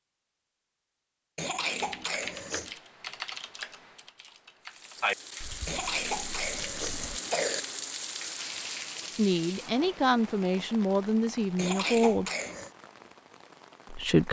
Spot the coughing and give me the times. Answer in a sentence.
You can hear the coughing from 1.4 to 2.7 s, from 5.7 to 7.6 s and from 11.6 to 12.7 s.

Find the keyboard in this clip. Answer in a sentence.
The keyboard can be heard from 1.7 to 7.2 s.